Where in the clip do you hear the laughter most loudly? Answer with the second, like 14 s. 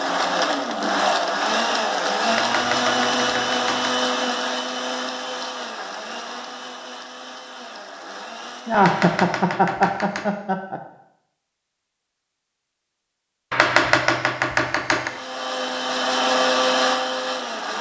9 s.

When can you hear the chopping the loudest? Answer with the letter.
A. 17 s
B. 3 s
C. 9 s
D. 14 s
D.